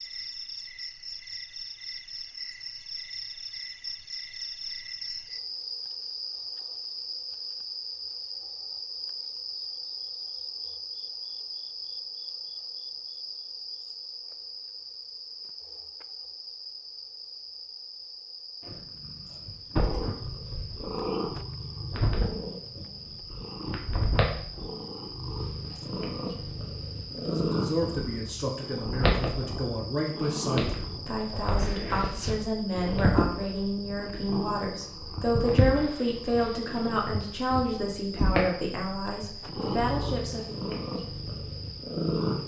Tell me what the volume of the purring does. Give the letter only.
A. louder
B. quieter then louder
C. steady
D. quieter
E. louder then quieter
C.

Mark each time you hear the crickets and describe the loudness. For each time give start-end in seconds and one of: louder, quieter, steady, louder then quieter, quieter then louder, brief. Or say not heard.
0.0-42.4 quieter.